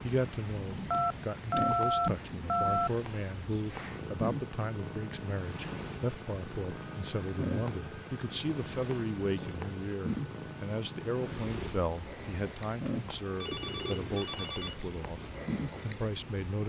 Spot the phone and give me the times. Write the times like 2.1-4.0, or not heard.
0.9-2.9, 6.7-8.1, 13.4-14.8.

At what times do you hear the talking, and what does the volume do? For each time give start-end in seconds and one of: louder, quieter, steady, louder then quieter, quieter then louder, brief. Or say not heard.
0.0-16.6 steady.